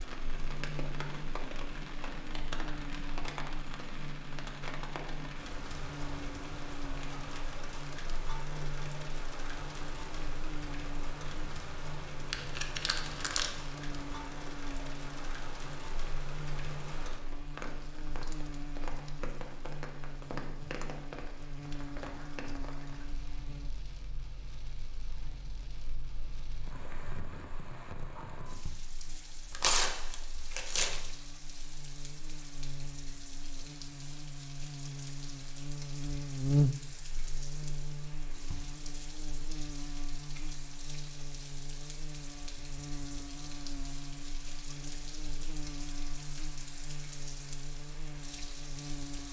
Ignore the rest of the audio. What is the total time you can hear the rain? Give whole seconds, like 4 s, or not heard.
49 s.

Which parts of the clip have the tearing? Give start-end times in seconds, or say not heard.
12.3-13.5, 29.5-31.0.